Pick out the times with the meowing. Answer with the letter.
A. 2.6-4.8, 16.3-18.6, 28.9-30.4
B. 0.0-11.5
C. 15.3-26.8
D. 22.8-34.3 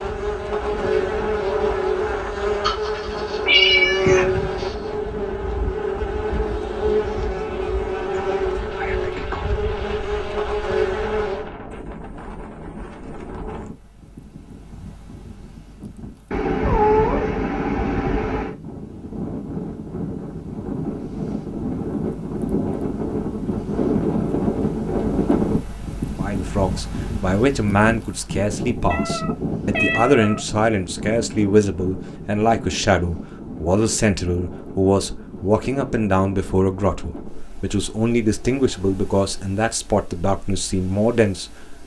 A.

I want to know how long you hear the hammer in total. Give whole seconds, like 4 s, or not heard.
not heard.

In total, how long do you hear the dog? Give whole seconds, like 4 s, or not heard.
not heard.